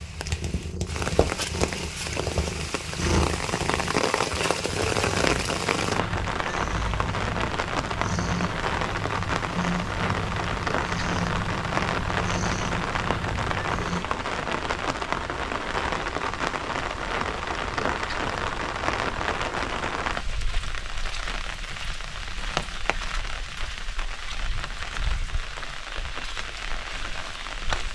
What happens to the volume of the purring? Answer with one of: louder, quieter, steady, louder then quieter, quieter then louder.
steady.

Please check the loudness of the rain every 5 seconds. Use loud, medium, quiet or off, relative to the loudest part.
loud, loud, loud, loud, medium, medium.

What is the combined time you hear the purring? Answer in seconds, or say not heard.
14 s.